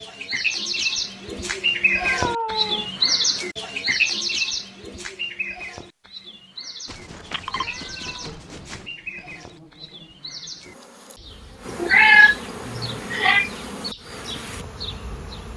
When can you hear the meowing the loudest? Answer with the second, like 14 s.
12 s.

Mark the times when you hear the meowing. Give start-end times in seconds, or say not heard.
1.9-2.9, 6.8-8.8, 11.8-13.5.